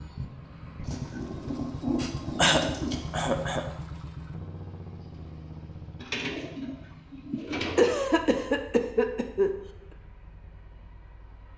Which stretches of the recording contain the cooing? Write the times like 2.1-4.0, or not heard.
0.8-3.4, 6.0-8.0.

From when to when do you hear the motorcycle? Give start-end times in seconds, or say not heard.
0.0-11.5.